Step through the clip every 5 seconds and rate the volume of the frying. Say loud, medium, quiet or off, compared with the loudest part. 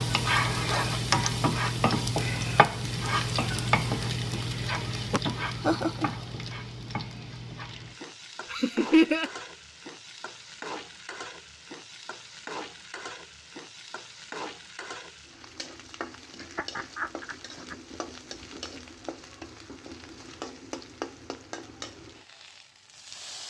loud, medium, quiet, quiet, quiet.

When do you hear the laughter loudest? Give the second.
9 s.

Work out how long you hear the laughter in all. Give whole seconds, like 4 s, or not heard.
3 s.